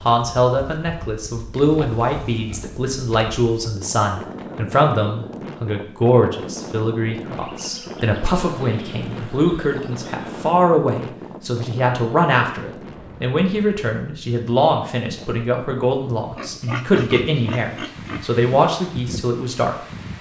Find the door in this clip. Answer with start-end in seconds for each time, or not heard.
not heard.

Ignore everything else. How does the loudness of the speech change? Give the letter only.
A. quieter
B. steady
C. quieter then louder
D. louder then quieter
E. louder
B.